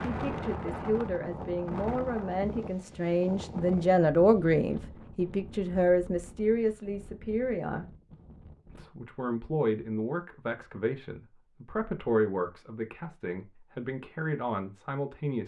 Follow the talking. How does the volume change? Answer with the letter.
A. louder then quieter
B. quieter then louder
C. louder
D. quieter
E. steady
A.